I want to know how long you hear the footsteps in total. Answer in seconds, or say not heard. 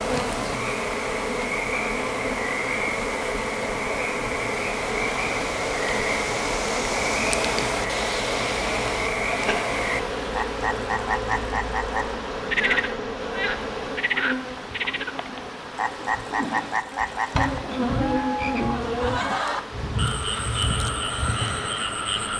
not heard.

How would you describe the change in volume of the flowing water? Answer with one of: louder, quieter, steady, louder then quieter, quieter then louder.
quieter.